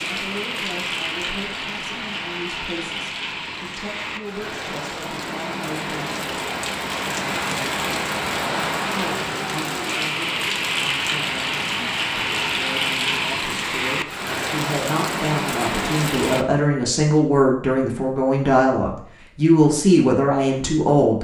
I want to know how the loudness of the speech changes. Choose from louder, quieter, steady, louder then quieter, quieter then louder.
louder.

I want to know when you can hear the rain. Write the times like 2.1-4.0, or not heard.
0.0-16.4.